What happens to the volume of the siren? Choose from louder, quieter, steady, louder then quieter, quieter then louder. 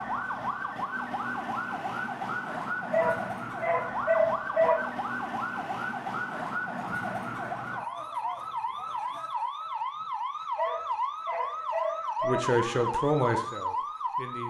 steady.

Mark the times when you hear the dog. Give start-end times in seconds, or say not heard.
2.9-4.8, 10.6-12.5.